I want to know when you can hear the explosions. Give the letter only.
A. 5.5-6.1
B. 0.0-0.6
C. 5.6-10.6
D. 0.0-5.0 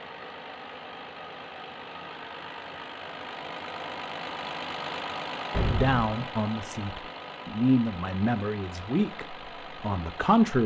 A.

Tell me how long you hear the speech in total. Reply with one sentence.
The speech can be heard for 5 seconds in total.